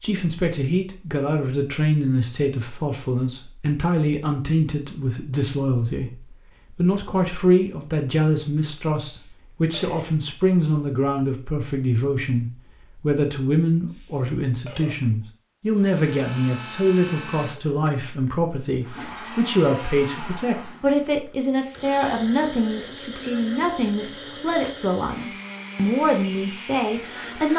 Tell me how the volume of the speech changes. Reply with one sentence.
The loudness of the speech stays about the same.